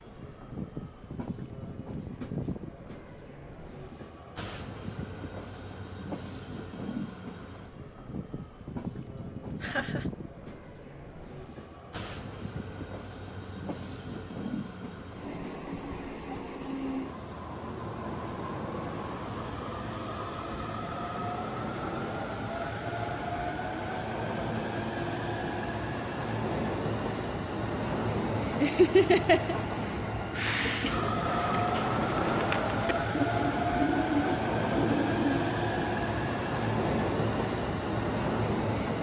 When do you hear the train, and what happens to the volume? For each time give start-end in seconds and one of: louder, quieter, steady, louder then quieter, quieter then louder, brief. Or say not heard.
0.0-38.9 louder.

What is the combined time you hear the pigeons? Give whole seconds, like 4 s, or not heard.
5 s.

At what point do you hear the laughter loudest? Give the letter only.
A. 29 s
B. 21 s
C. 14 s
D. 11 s
A.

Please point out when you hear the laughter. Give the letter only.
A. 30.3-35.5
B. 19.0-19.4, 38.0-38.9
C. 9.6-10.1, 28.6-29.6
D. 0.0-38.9
C.